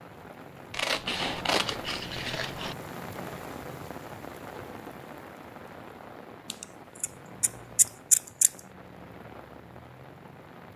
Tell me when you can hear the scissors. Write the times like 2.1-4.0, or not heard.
0.7-2.8, 6.5-8.5.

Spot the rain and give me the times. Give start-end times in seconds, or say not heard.
0.0-10.7.